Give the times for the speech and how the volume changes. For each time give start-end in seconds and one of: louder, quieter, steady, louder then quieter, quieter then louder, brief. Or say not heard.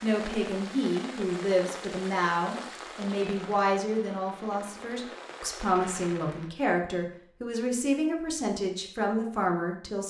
0.0-10.0 steady.